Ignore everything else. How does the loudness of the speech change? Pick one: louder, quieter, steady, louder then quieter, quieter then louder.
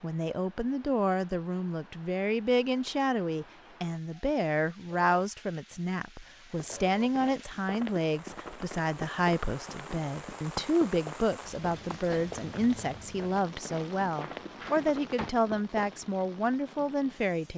steady.